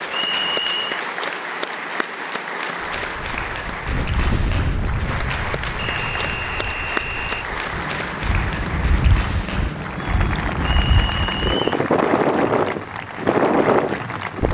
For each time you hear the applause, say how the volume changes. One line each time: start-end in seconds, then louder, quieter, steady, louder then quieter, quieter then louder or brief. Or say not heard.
0.0-14.4 steady.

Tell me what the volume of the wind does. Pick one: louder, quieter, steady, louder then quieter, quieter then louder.
quieter then louder.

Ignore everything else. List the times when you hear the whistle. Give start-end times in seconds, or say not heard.
0.1-1.0, 5.8-7.5, 10.8-11.7.